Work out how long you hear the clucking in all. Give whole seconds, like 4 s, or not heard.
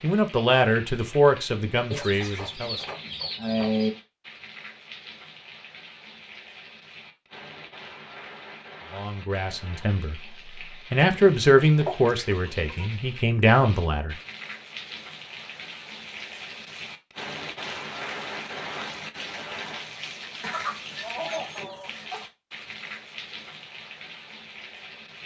6 s.